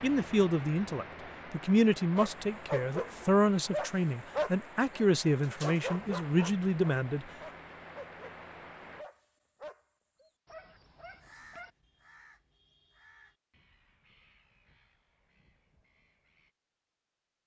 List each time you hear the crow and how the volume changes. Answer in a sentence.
You can hear the crow from 11.0 to 16.6 s, getting quieter.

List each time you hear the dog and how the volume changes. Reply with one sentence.
You can hear the dog from 2.1 to 11.7 s, getting quieter.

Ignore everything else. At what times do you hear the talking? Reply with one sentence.
You can hear the talking from 0.0 to 7.2 s.